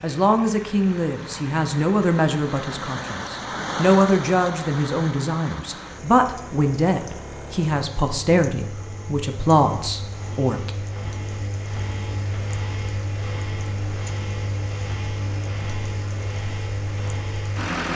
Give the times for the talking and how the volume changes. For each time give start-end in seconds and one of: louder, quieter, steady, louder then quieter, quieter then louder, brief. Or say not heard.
0.0-10.7 steady.